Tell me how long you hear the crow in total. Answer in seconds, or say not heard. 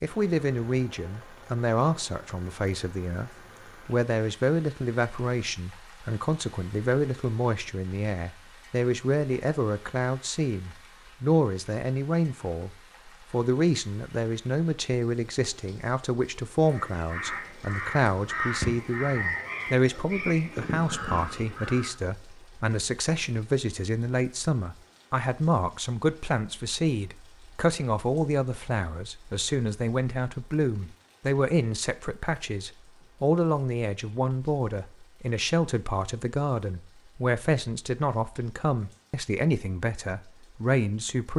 5 s.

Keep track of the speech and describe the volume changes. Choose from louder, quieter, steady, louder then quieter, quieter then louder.
steady.